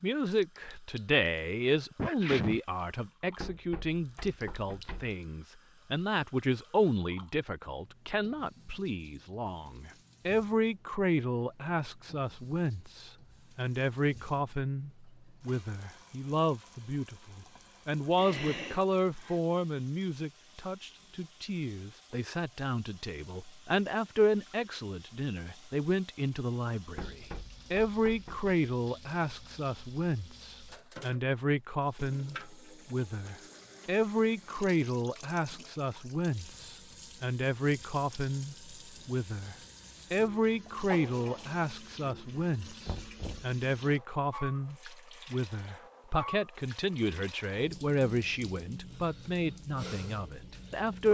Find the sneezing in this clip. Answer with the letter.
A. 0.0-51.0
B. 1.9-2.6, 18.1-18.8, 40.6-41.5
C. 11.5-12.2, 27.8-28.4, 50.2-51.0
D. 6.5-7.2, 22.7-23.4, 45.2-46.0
B.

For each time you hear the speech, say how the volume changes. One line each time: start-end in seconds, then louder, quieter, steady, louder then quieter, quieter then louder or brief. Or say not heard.
0.0-51.0 steady.